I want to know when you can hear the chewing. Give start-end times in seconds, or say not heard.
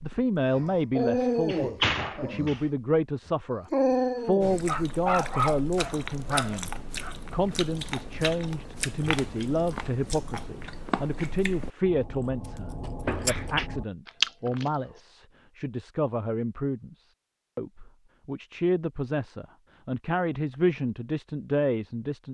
4.4-15.0.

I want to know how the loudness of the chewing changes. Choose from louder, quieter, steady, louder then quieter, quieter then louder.
louder.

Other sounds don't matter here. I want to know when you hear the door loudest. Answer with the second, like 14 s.
2 s.